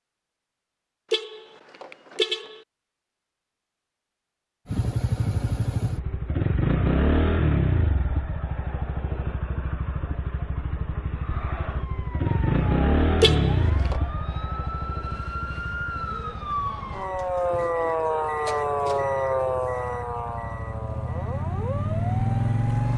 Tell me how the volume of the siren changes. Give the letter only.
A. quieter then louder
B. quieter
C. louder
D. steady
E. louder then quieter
E.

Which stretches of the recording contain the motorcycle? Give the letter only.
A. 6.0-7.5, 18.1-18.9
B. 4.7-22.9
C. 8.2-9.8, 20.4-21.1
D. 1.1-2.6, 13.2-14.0
B.